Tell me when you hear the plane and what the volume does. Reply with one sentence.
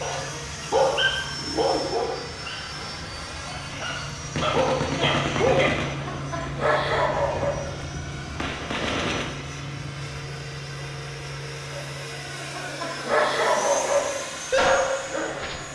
You can hear the plane from 0.0 to 15.6 s, at a steady volume.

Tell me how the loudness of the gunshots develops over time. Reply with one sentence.
The loudness of the gunshots goes down, then up.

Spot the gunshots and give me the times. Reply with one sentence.
The gunshots can be heard from 4.3 to 9.3 s.